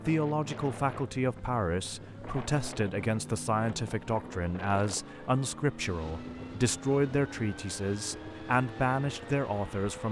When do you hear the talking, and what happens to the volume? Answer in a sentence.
You can hear the talking from 0.1 to 10.0 s, at a steady volume.